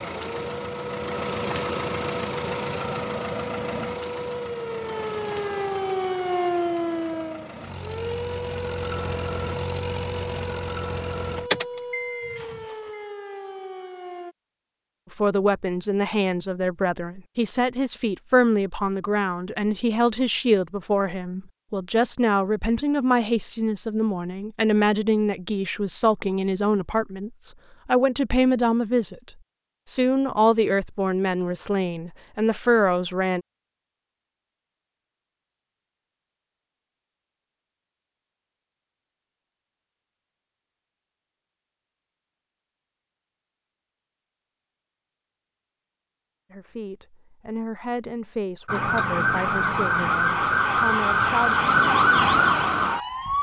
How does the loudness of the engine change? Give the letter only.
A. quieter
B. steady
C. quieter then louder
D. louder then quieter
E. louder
C.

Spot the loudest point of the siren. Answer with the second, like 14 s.
52 s.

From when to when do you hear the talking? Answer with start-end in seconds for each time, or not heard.
15.1-33.5, 46.5-51.5.